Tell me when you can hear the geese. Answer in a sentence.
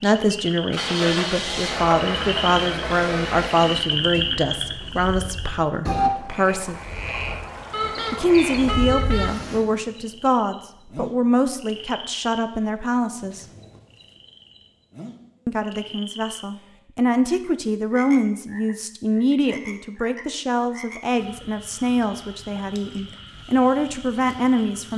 You can hear the geese from 7.7 to 9.4 s.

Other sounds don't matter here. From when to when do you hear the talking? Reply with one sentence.
The talking can be heard from 0.0 to 6.8 s, from 8.1 to 13.4 s and from 15.4 to 24.9 s.